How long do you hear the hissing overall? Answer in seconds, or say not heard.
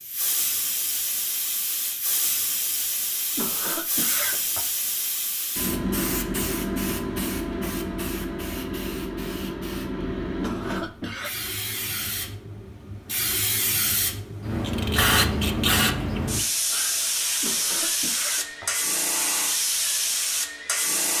21 s.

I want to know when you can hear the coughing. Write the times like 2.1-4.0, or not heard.
3.4-4.7, 10.4-11.3, 17.4-19.0.